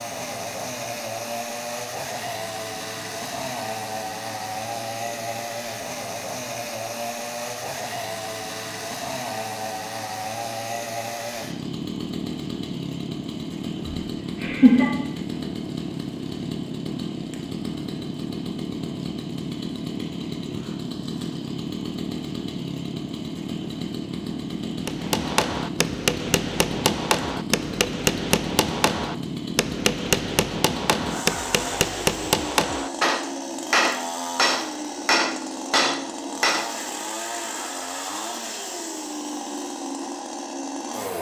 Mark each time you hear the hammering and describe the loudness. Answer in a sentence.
The hammering can be heard from 24.9 to 36.7 s, at a steady volume.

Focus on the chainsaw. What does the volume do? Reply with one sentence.
The volume of the chainsaw stays about the same.